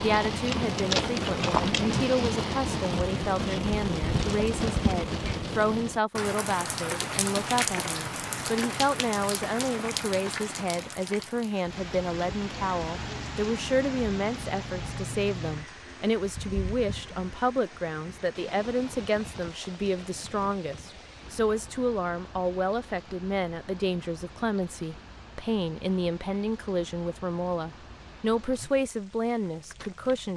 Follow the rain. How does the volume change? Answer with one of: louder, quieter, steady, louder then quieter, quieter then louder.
quieter.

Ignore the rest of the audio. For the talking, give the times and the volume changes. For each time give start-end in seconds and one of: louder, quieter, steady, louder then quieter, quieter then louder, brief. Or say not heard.
0.0-30.3 steady.